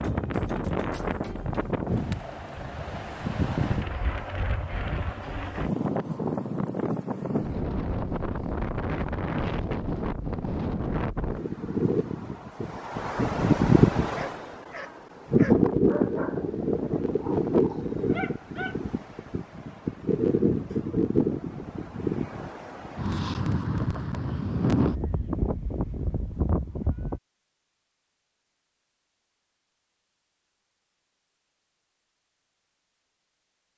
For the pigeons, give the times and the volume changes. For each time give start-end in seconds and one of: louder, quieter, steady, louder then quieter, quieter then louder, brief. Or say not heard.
not heard.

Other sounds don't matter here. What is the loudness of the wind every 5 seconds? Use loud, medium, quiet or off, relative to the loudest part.
medium, medium, loud, loud, loud, medium, off.